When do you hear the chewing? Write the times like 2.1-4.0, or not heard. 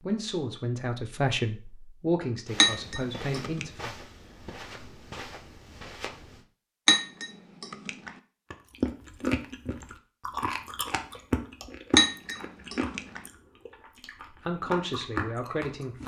8.5-16.0.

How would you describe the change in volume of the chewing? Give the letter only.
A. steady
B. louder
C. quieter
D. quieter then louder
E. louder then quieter
D.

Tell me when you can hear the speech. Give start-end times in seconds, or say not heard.
0.0-4.0, 14.3-16.0.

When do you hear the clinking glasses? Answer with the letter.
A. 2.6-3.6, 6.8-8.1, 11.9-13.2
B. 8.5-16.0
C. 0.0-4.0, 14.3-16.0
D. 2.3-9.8
A.